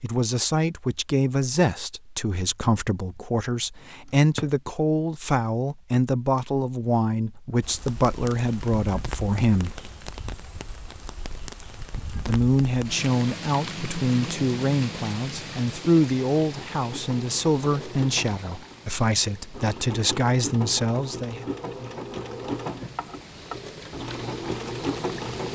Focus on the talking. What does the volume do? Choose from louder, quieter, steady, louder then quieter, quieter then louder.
steady.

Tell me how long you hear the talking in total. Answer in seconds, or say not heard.
19 s.